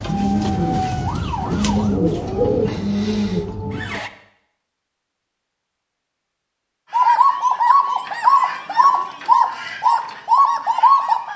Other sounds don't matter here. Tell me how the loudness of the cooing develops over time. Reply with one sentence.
The volume of the cooing goes up.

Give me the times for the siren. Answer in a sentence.
You can hear the siren from 0.0 to 4.1 s.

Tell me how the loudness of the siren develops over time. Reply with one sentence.
The volume of the siren goes down.